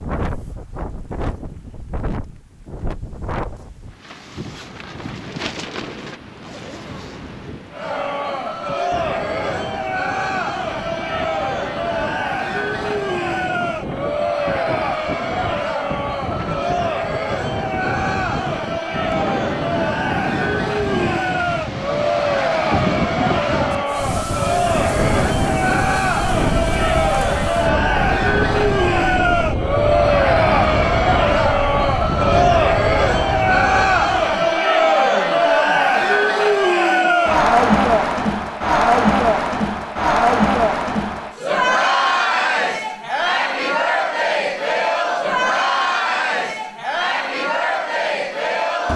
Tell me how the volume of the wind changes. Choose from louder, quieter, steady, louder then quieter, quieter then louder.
louder.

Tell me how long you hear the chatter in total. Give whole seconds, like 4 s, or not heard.
41 s.